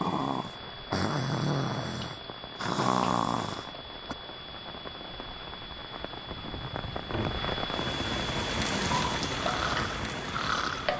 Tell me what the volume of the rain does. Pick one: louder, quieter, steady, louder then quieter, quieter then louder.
louder.